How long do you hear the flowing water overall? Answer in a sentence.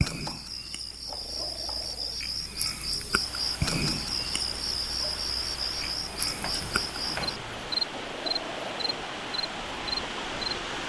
The flowing water can be heard for 8 seconds in total.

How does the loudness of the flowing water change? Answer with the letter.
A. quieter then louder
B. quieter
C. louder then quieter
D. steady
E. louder
E.